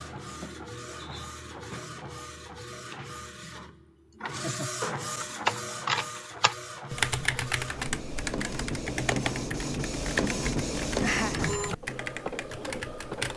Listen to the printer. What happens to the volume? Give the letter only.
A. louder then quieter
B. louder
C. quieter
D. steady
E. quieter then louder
B.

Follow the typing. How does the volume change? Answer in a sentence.
The loudness of the typing goes down.